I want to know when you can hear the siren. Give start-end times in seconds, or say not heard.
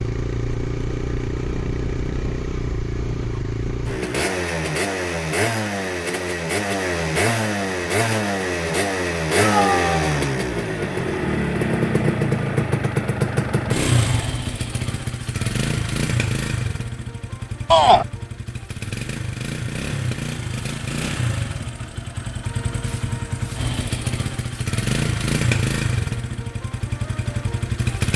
not heard.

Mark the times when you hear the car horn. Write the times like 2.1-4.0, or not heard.
not heard.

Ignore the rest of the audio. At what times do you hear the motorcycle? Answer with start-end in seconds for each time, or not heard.
0.0-28.1.